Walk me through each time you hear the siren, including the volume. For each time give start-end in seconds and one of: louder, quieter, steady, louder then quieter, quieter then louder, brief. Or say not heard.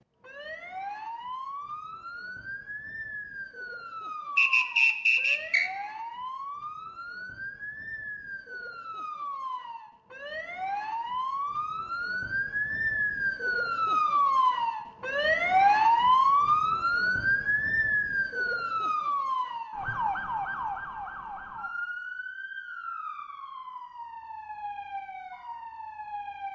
0.2-26.5 louder then quieter.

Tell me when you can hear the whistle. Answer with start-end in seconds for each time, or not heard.
4.3-5.7.